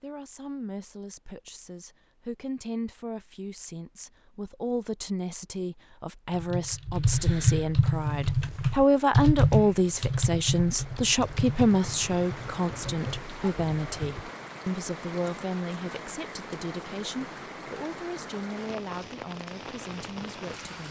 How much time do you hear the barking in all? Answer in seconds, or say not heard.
not heard.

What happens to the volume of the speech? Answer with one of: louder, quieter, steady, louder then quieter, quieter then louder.
louder then quieter.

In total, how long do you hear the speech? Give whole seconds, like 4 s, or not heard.
21 s.